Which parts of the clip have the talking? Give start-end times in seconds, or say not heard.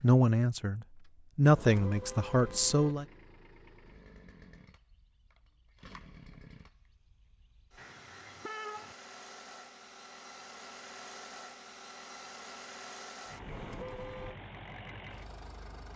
0.0-3.0.